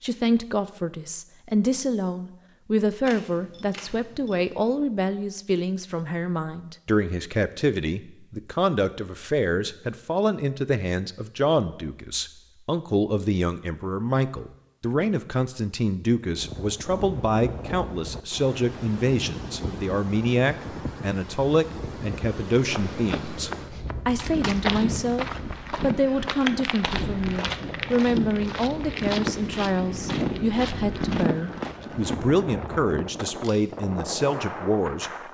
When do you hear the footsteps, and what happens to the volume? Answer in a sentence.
The footsteps can be heard from 22.6 to 32.2 s, at a steady volume.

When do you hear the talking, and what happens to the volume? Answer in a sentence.
You can hear the talking from 0.0 to 35.1 s, at a steady volume.